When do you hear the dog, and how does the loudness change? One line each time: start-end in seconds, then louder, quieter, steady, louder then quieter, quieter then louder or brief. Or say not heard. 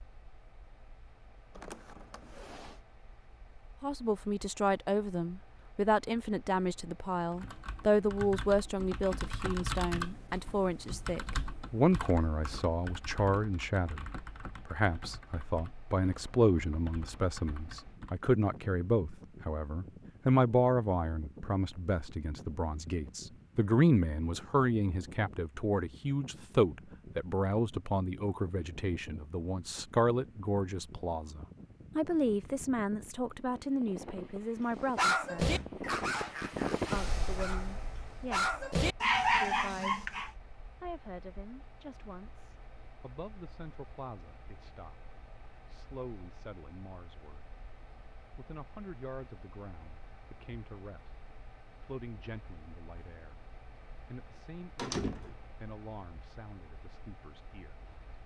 35.0-40.3 quieter then louder.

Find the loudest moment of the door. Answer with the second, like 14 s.
55 s.